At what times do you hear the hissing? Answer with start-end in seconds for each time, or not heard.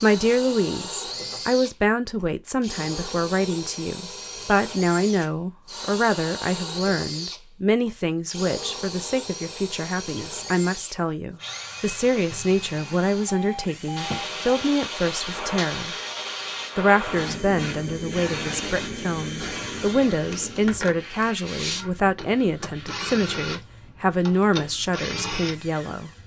13.9-26.2.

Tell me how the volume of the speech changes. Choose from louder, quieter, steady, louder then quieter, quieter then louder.
steady.